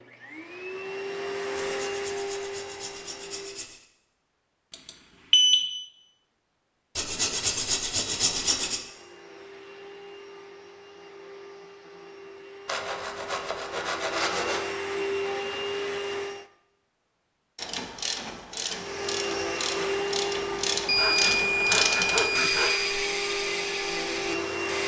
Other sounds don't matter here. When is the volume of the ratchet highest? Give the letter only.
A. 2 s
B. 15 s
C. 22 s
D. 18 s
C.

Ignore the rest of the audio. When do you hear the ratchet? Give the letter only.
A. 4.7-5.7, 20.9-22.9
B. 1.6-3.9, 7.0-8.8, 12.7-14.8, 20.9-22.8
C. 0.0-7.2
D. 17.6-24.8
D.